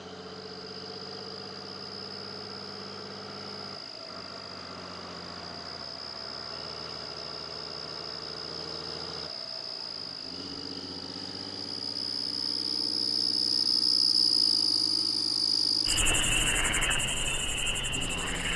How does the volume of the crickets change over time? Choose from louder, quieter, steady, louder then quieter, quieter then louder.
louder.